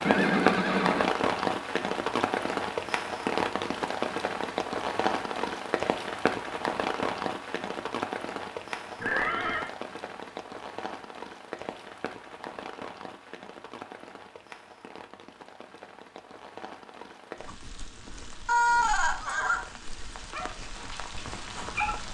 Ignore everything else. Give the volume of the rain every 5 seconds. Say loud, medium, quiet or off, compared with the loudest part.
loud, loud, quiet, quiet, quiet.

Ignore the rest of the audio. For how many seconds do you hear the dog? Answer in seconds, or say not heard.
2 s.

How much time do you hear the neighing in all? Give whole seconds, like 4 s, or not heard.
3 s.